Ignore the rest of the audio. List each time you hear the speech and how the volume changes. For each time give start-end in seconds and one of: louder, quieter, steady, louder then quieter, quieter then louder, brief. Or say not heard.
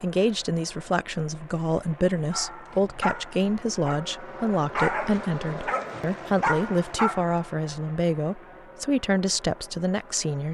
0.0-10.5 steady.